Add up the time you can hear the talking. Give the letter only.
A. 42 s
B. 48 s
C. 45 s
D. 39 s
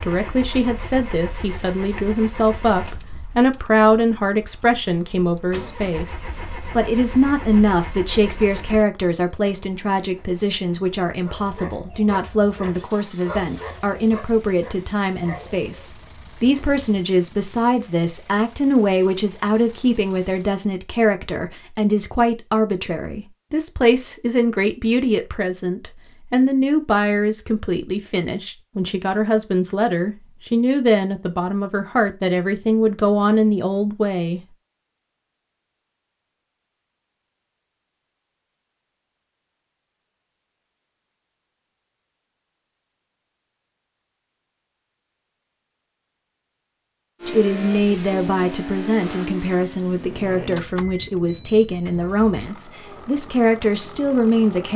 A.